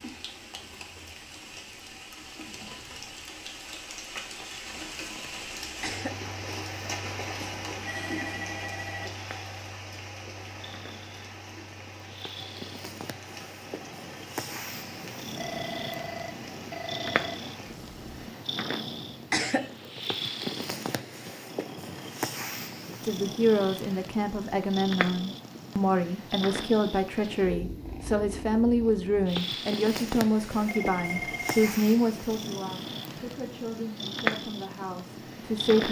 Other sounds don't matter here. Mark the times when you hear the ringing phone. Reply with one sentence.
You can hear the ringing phone from 7.4 to 9.1 s, from 15.3 to 17.4 s and from 30.6 to 31.8 s.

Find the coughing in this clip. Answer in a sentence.
You can hear the coughing from 5.3 to 6.2 s and from 19.1 to 19.7 s.